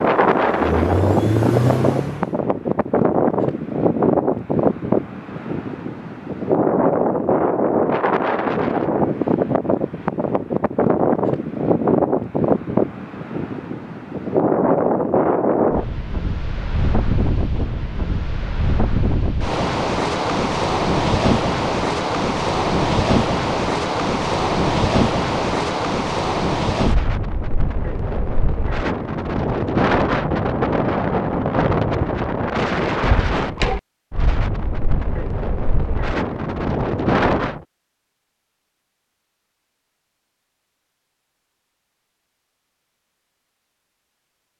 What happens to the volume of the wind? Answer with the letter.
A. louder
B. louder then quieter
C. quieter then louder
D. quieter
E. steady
E.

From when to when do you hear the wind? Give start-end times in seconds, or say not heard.
0.0-37.6.